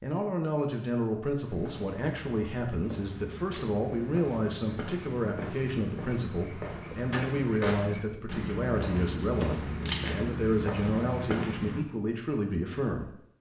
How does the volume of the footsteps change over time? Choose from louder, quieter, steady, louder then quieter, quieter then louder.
louder.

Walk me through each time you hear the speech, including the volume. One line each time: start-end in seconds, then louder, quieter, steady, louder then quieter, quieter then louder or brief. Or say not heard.
0.0-13.2 steady.